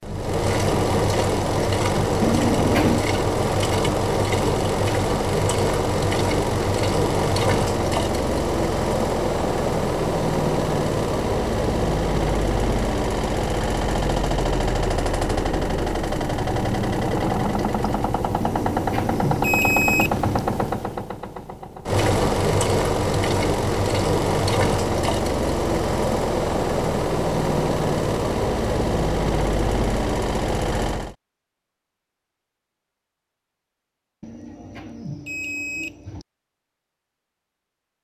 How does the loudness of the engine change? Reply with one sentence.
The volume of the engine stays about the same.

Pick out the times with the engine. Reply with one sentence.
The engine can be heard from 0.0 to 31.1 s.